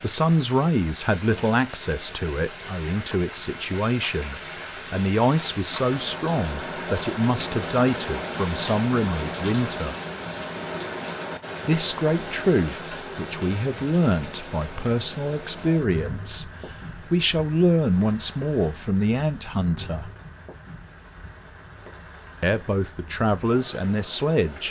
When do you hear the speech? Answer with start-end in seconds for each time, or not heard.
0.0-9.9, 11.7-20.1, 22.4-24.6.